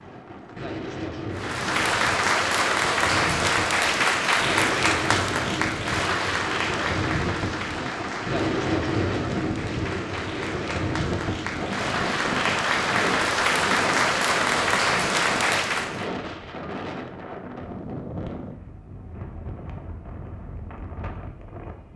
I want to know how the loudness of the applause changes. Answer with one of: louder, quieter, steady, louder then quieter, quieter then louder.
quieter then louder.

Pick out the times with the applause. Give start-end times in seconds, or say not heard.
1.4-16.1.